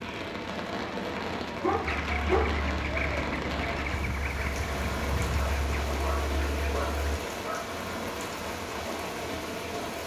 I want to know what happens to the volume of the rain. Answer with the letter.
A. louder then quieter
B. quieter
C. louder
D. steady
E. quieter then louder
D.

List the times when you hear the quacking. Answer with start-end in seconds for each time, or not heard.
1.8-7.2.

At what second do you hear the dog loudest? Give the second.
2 s.